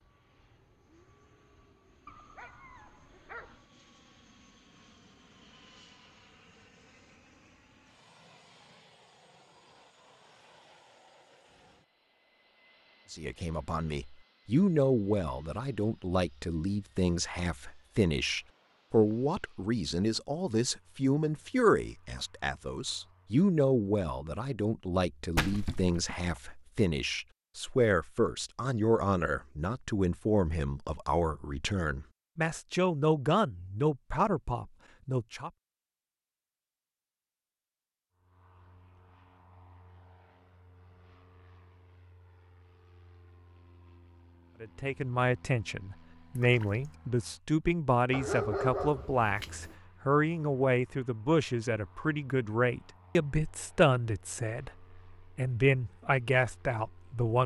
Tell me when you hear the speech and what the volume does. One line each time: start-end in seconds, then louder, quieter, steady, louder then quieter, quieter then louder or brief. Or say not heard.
13.1-35.5 steady
44.6-57.4 steady.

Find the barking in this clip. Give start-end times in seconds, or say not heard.
2.0-3.6, 48.1-49.8.